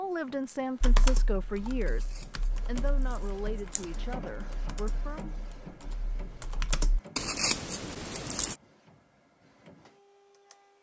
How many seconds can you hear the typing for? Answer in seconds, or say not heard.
6 s.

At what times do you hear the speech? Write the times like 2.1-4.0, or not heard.
0.0-5.3.